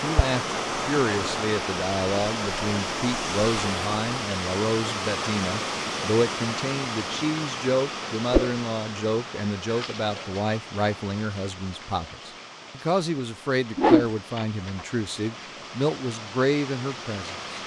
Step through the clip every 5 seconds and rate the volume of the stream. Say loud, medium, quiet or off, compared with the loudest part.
loud, loud, quiet, medium.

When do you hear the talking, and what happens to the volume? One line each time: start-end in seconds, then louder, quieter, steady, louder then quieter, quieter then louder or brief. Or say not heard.
0.0-17.4 steady.